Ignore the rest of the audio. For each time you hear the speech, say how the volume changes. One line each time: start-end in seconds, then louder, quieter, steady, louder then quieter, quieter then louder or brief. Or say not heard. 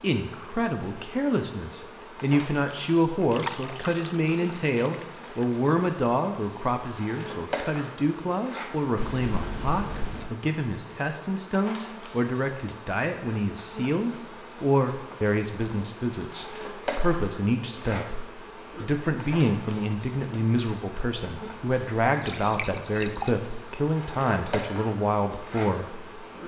0.0-26.2 steady.